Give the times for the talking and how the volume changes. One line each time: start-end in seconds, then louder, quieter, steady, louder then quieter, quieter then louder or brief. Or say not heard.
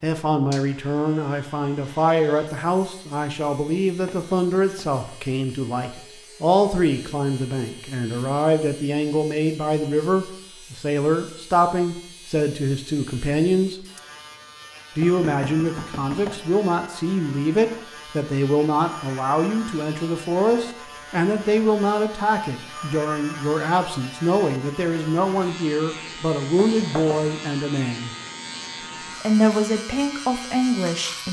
0.0-13.8 steady
14.9-28.1 steady
29.2-31.2 brief.